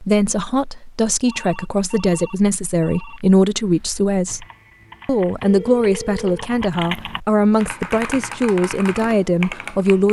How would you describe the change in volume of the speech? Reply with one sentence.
The volume of the speech stays about the same.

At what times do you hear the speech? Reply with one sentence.
The speech can be heard from 0.0 to 4.5 s and from 5.0 to 10.0 s.